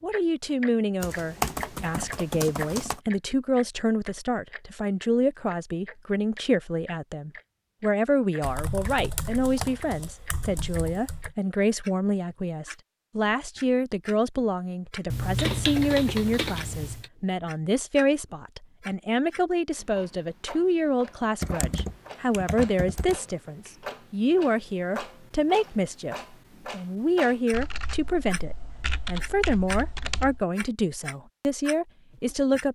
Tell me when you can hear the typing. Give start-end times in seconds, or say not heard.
1.0-3.0, 8.4-11.3, 15.1-17.1, 21.4-23.2, 27.5-30.4.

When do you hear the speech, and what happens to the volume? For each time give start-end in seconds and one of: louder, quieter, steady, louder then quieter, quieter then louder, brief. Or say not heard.
0.0-32.6 steady.